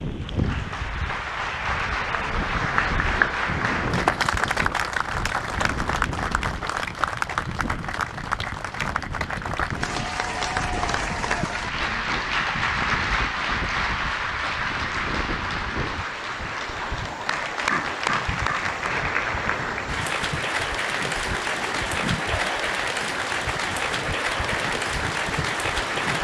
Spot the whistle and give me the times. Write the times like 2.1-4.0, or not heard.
not heard.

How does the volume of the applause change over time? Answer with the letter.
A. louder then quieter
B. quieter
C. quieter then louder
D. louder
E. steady
E.